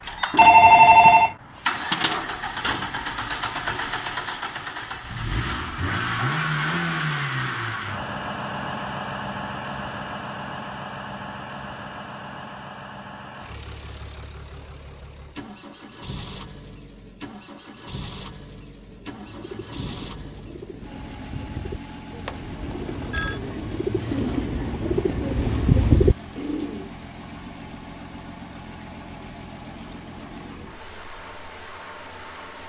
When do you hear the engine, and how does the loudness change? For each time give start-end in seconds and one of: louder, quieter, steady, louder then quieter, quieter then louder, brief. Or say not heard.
0.0-32.6 quieter.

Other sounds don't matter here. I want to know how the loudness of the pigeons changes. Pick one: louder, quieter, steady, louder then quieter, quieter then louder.
louder.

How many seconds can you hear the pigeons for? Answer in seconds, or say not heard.
8 s.